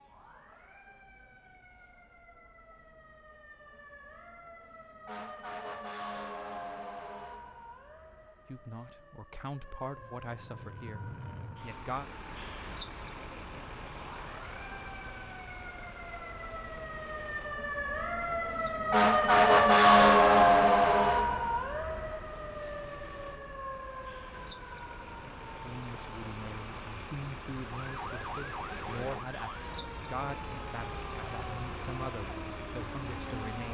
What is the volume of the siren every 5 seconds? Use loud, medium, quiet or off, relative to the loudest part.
quiet, quiet, quiet, loud, loud, quiet, quiet.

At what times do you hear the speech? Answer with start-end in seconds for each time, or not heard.
8.4-12.1, 25.6-33.6.